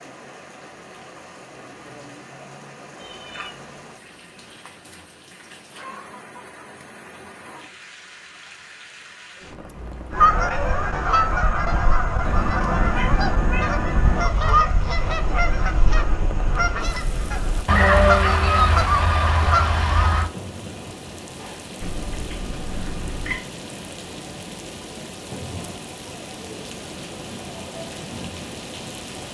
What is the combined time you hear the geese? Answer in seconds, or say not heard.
10 s.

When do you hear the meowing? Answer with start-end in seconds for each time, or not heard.
3.0-3.7, 12.2-14.2, 21.8-23.4.